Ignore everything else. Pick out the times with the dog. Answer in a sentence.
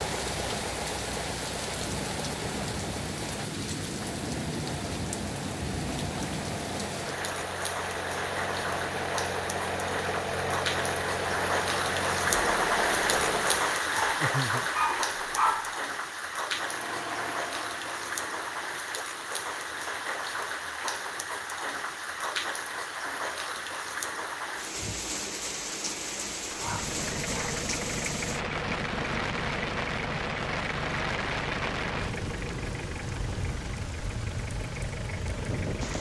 The dog can be heard from 13.9 to 15.8 s and from 26.5 to 27.6 s.